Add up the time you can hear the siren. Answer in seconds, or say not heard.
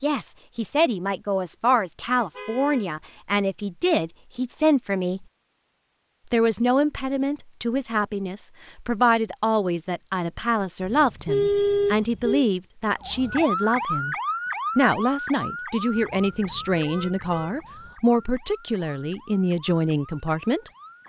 8 s.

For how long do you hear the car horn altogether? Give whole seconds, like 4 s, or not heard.
4 s.